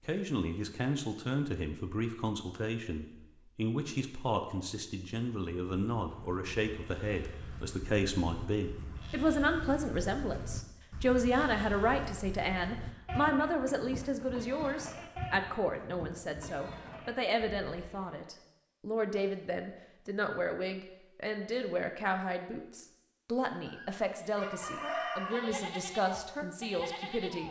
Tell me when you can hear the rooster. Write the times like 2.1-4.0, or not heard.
23.6-25.6.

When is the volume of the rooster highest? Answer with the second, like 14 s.
25 s.